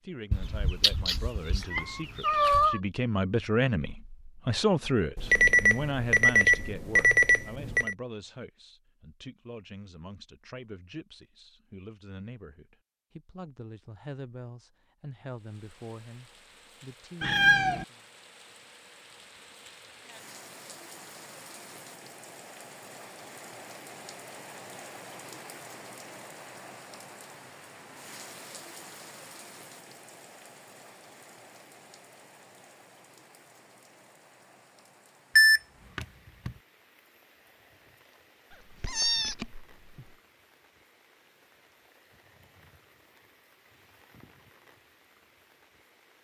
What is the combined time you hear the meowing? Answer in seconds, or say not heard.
5 s.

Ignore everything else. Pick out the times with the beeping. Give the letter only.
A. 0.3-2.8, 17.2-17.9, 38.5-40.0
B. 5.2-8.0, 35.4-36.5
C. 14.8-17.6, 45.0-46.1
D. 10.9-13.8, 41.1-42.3
B.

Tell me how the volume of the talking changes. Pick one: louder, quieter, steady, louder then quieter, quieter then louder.
quieter.